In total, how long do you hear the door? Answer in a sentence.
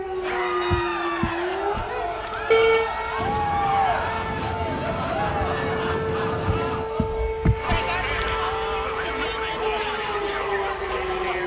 The door can be heard for 2 seconds in total.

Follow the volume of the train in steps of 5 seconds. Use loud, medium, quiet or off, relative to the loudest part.
loud, loud, off.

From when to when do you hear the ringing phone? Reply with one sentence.
You can hear the ringing phone from 1.8 to 2.9 s and from 7.7 to 8.3 s.